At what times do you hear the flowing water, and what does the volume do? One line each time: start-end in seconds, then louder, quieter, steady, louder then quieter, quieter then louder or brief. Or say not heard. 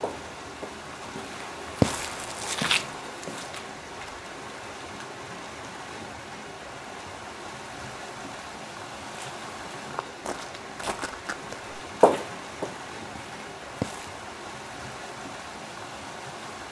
0.0-16.6 steady.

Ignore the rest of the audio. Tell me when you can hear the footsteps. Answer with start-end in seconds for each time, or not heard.
0.0-3.8, 9.1-14.2.